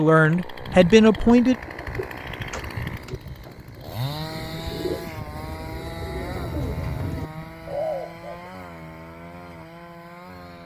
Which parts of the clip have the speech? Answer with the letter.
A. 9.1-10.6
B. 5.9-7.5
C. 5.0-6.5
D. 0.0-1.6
D.